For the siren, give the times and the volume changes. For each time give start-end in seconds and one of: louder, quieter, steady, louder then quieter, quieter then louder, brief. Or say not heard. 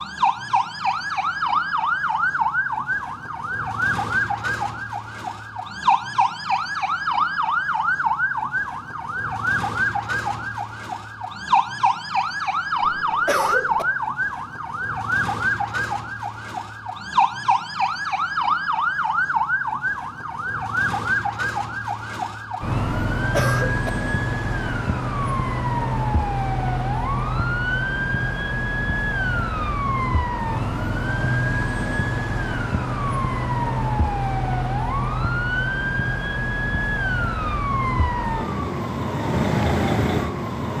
0.0-40.7 steady.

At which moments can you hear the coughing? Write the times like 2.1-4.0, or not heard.
12.8-13.8, 23.1-23.9.